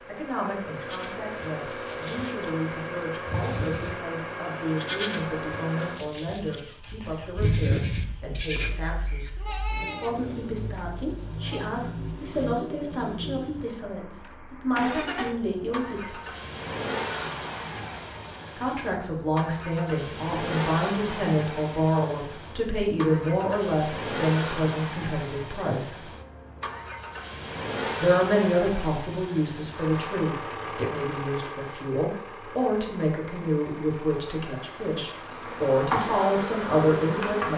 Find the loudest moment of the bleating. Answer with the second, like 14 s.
8 s.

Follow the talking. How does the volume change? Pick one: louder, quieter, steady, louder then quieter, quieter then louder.
louder.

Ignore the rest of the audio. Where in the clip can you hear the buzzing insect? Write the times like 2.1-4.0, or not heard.
35.1-37.5.